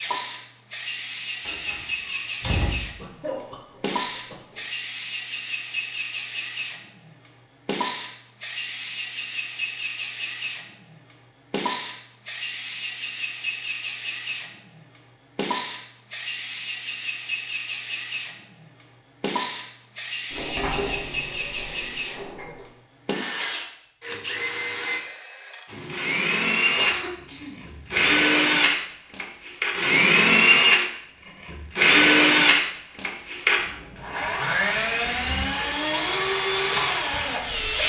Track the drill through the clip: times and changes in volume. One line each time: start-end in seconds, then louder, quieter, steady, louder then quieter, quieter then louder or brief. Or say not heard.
0.0-37.8 louder.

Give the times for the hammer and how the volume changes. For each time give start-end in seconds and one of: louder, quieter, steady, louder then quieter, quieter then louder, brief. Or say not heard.
not heard.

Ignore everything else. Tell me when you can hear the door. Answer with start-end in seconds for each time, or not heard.
1.4-2.9, 20.3-22.6.